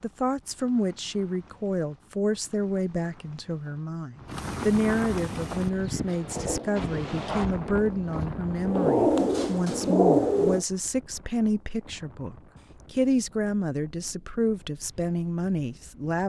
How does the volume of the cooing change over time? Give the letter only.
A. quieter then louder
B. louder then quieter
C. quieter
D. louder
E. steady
A.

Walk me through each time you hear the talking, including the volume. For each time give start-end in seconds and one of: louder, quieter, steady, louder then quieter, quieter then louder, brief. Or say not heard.
0.0-16.2 steady.